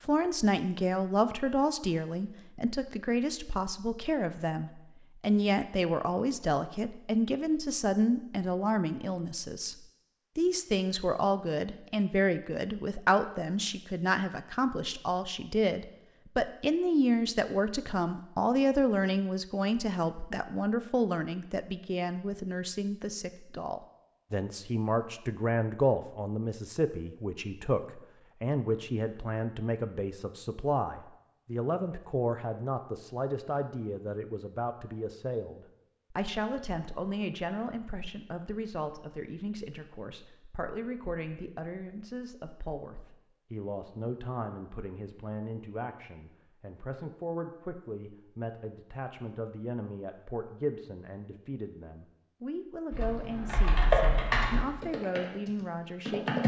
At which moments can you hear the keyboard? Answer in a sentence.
You can hear the keyboard from 52.9 to 56.4 s.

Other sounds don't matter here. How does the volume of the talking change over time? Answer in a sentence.
The volume of the talking goes down.